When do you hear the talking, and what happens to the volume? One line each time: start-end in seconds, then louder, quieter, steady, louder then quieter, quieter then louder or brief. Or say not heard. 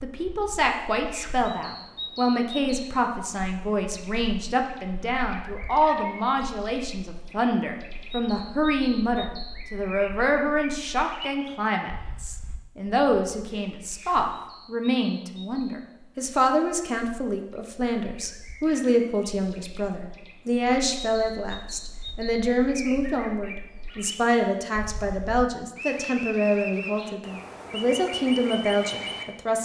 0.0-29.6 steady.